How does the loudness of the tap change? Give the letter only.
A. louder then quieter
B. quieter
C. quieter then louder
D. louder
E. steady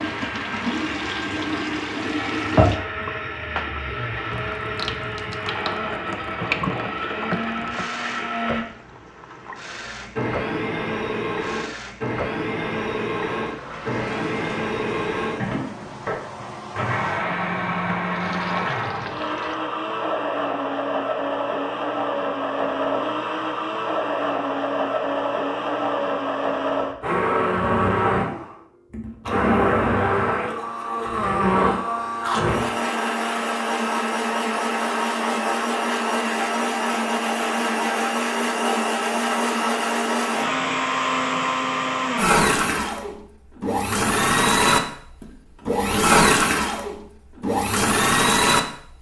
B.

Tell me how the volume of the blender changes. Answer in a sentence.
The loudness of the blender goes up.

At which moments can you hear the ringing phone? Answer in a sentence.
You can't hear the ringing phone here.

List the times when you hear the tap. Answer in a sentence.
You can hear the tap from 0.0 to 19.6 s.